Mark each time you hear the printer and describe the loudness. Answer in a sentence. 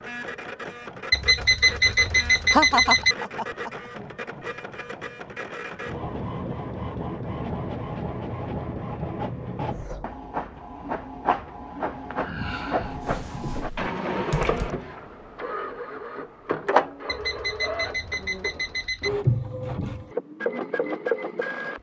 You can hear the printer from 0.0 to 21.7 s, getting louder.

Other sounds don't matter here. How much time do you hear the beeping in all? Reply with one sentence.
You can hear the beeping for 4 seconds altogether.